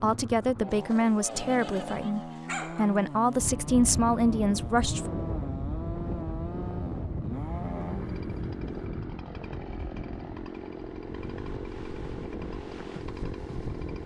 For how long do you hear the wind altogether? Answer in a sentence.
The wind can be heard for 11 seconds in total.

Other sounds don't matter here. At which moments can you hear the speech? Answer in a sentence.
The speech can be heard from 0.0 to 5.0 s.